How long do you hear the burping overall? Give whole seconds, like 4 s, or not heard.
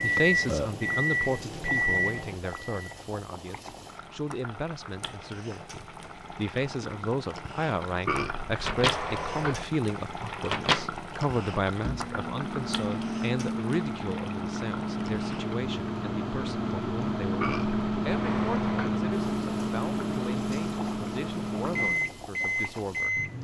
4 s.